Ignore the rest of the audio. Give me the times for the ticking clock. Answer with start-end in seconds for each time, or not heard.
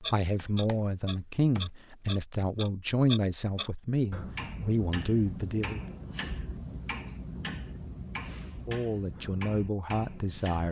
0.0-10.6.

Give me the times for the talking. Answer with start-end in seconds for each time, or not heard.
0.0-5.8, 8.7-10.6.